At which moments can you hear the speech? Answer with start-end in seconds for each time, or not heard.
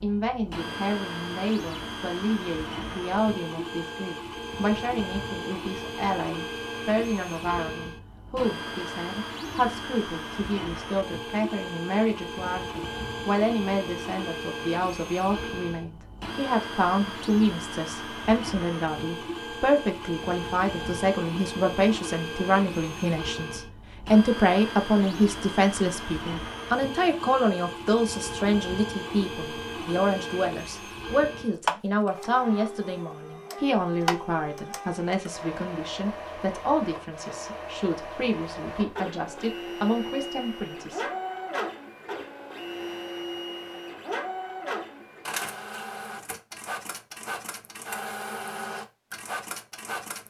0.0-41.0.